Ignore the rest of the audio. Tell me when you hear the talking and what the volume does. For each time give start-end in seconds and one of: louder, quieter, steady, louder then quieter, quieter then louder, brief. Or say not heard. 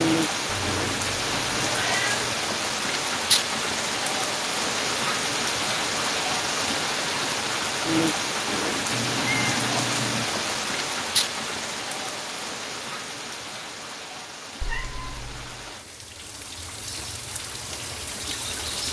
not heard.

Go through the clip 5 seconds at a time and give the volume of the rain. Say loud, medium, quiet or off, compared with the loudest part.
loud, loud, medium, medium.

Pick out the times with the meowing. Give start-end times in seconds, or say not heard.
0.5-2.4, 8.9-10.2, 14.6-15.8.